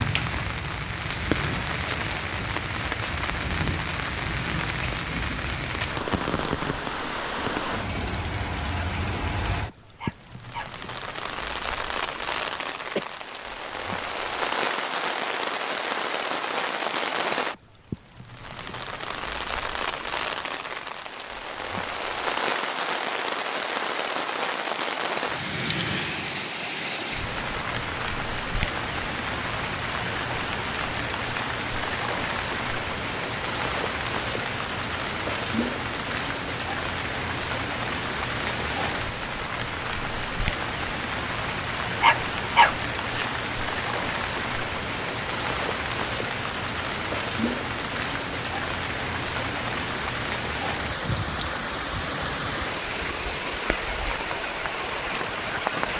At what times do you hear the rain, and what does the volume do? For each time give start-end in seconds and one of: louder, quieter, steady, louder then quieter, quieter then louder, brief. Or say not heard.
0.0-55.9 steady.